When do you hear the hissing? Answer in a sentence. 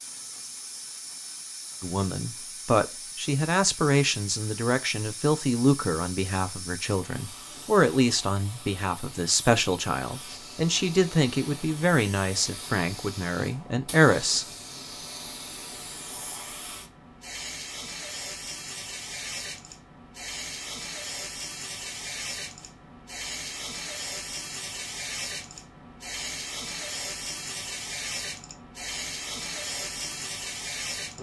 The hissing can be heard from 0.0 to 31.1 s.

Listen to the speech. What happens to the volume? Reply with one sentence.
The volume of the speech stays about the same.